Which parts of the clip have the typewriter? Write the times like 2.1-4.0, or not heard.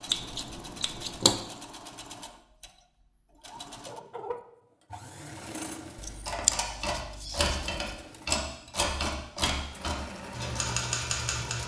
6.0-11.6.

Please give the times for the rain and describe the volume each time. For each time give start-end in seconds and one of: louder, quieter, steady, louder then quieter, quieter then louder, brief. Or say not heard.
not heard.